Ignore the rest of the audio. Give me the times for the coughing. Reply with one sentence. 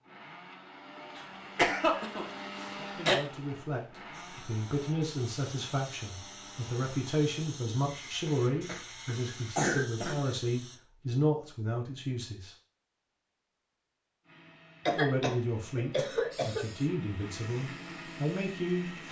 The coughing can be heard from 1.1 to 3.1 s, from 8.2 to 10.2 s and from 14.8 to 16.6 s.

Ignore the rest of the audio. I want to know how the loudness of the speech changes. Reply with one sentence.
The volume of the speech stays about the same.